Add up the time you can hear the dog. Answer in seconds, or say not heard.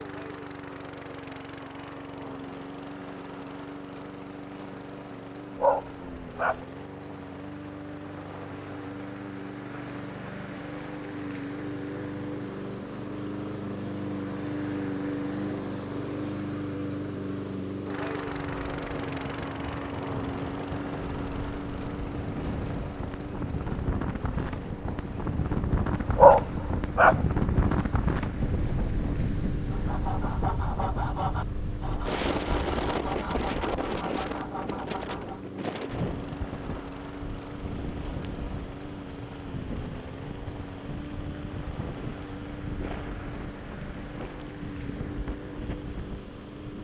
2 s.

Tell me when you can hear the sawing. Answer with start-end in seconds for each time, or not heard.
29.6-35.5.